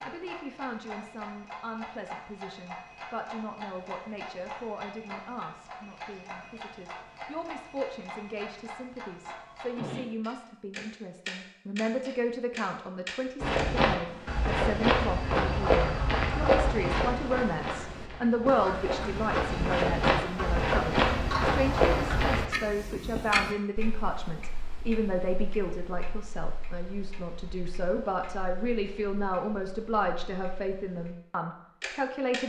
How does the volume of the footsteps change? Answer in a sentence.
The volume of the footsteps goes down, then up.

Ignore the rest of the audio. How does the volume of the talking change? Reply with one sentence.
The loudness of the talking goes up.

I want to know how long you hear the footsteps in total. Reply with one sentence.
You can hear the footsteps for 9 seconds altogether.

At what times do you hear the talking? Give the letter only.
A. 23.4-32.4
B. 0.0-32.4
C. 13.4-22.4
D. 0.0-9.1
B.